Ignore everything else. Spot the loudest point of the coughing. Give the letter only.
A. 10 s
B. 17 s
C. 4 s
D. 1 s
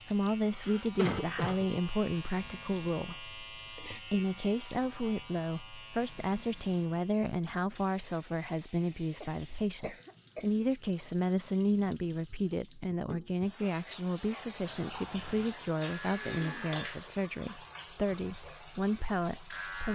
D.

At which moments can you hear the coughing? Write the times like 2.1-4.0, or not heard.
0.2-1.7, 9.2-10.7, 16.0-16.6.